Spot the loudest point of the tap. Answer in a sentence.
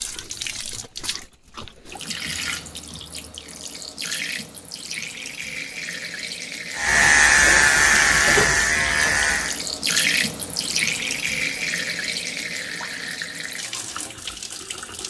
The loudest moment of the tap is at 10 seconds.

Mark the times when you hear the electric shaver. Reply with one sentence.
You can hear the electric shaver from 6.8 to 9.6 s.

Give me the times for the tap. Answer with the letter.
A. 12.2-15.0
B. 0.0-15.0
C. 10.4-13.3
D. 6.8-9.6
B.